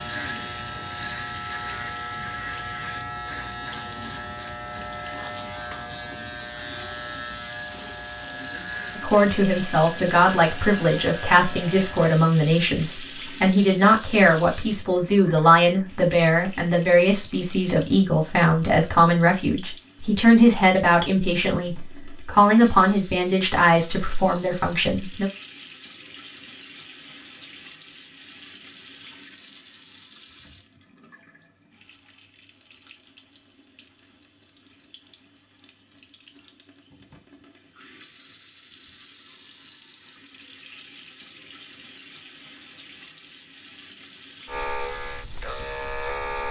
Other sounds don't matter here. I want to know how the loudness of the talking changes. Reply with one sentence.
The loudness of the talking stays about the same.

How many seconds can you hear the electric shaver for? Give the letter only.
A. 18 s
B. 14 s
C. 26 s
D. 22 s
B.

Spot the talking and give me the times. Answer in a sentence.
The talking can be heard from 8.9 to 25.3 s.